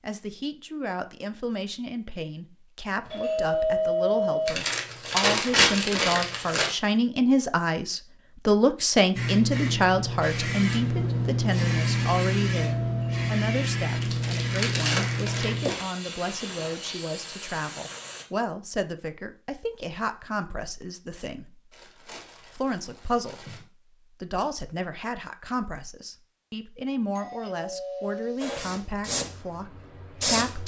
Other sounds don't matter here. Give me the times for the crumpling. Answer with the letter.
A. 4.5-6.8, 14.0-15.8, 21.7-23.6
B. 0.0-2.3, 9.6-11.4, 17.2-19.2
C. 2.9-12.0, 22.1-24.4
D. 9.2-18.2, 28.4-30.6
A.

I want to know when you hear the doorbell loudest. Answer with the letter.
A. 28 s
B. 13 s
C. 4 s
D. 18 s
C.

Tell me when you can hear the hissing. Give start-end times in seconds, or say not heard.
9.2-18.2, 28.4-30.6.